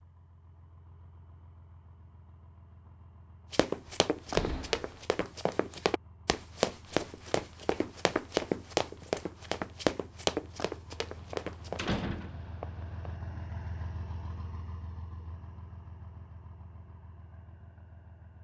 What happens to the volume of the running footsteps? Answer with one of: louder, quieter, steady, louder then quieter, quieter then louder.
steady.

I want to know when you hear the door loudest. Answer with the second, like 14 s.
12 s.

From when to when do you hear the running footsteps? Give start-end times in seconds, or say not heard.
3.5-11.9.